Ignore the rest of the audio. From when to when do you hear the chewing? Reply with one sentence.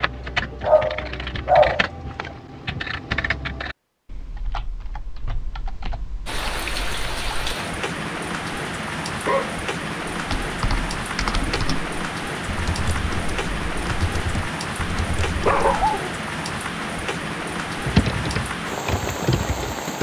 The chewing can't be heard in this clip.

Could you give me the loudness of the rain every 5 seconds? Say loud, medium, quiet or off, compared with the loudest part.
off, loud, loud, loud.